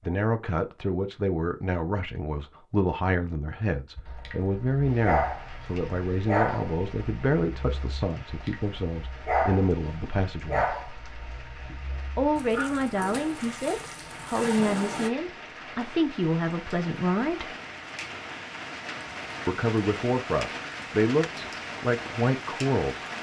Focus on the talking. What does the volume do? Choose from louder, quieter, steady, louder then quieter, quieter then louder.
steady.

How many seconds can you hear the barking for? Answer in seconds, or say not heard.
11 s.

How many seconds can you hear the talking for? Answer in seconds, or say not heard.
20 s.